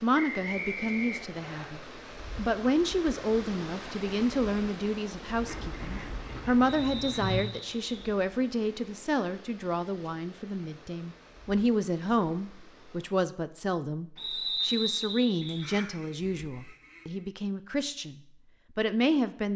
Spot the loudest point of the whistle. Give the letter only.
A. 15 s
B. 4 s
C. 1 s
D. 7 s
A.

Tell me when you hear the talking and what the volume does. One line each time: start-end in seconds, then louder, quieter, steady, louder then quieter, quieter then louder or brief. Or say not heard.
0.0-19.5 steady.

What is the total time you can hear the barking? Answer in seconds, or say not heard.
not heard.